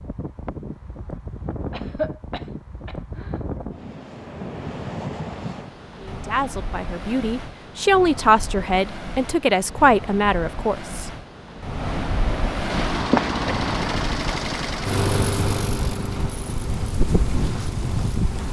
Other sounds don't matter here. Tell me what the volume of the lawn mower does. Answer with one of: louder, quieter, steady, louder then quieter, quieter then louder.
quieter.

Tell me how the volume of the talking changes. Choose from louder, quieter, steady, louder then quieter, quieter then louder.
louder.